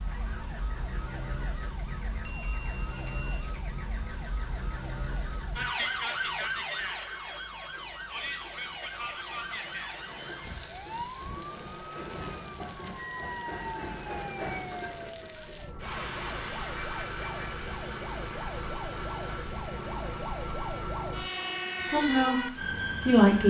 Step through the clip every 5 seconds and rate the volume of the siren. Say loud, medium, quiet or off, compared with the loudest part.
medium, loud, medium, medium, loud.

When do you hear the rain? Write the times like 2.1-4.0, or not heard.
not heard.